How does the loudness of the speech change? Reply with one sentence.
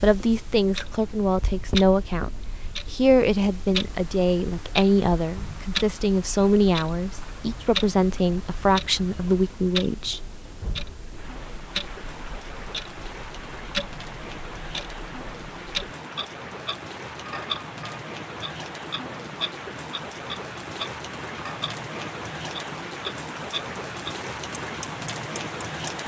The loudness of the speech stays about the same.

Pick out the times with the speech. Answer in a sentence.
You can hear the speech from 0.0 to 10.2 s.